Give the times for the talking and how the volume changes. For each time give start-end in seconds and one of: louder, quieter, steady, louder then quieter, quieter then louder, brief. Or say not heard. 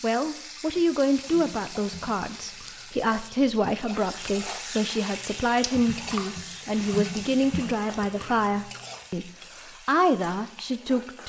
0.0-11.2 steady.